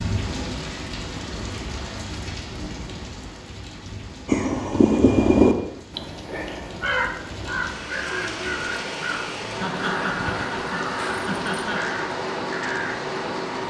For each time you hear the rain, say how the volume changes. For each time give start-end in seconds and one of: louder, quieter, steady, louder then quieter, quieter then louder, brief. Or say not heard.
0.0-13.6 quieter then louder.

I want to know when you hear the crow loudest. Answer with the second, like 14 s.
5 s.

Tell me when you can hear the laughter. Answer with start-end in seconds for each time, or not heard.
9.6-12.0.